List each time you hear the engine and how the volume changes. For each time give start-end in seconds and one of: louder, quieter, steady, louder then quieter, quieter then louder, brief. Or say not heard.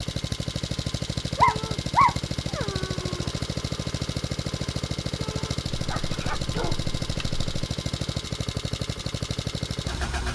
0.0-10.2 steady.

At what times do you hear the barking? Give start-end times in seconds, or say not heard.
1.4-3.3, 5.7-7.6.